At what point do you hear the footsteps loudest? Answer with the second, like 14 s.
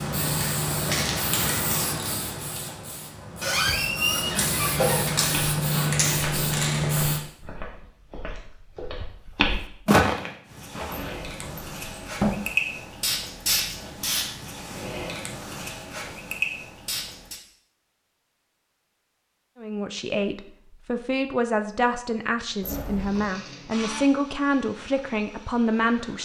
10 s.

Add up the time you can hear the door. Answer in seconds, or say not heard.
4 s.